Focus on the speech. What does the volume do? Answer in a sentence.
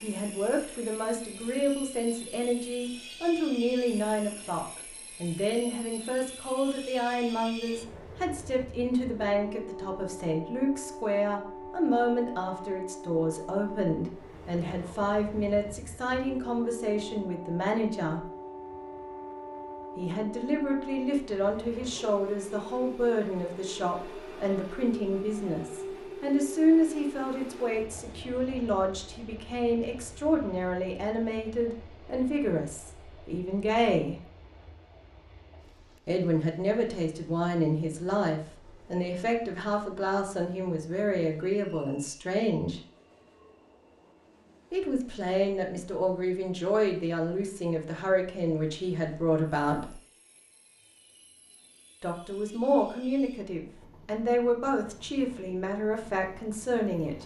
The volume of the speech stays about the same.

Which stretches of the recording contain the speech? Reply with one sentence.
You can hear the speech from 0.0 to 18.2 s, from 19.9 to 34.2 s, from 36.0 to 42.8 s, from 44.7 to 50.0 s and from 52.0 to 57.2 s.